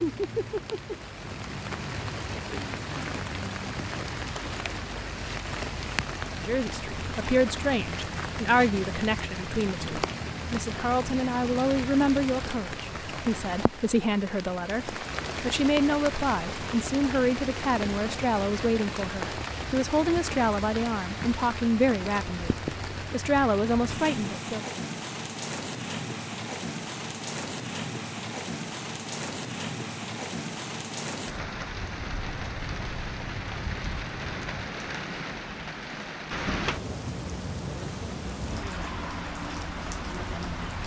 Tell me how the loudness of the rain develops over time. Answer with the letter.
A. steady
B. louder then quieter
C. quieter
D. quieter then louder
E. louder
A.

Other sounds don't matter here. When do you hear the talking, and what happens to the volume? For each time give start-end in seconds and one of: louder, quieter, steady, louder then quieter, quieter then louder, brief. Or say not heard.
6.3-24.7 steady.